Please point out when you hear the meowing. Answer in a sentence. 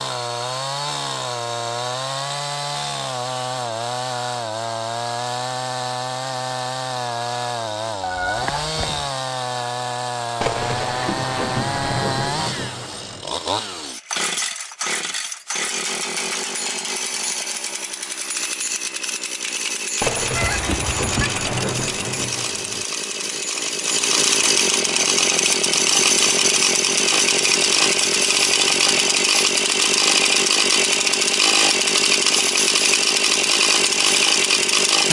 The meowing can be heard from 8.0 to 9.1 s and from 20.3 to 21.3 s.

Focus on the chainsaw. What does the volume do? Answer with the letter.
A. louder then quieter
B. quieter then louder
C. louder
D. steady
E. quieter
C.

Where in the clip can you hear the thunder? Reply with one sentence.
You can hear the thunder from 10.4 to 13.2 s and from 20.0 to 22.9 s.